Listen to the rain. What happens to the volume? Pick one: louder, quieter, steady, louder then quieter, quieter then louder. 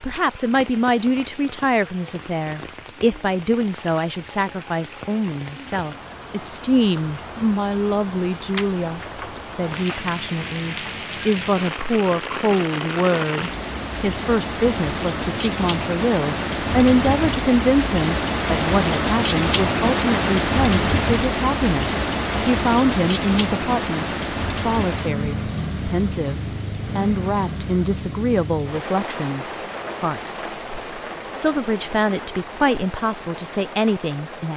louder then quieter.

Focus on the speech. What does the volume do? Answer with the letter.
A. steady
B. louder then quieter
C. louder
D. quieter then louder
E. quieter
A.